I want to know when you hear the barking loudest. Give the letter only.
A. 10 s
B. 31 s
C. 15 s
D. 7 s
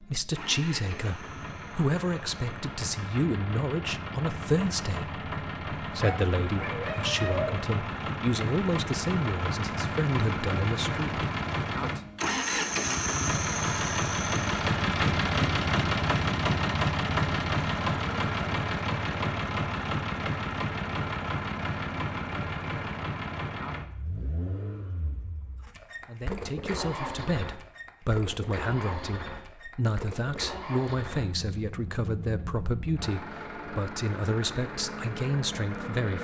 D.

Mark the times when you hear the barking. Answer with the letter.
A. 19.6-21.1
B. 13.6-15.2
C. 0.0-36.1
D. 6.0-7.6
D.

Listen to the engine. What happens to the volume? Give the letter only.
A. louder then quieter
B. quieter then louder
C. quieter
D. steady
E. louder
A.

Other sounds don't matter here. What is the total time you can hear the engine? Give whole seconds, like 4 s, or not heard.
36 s.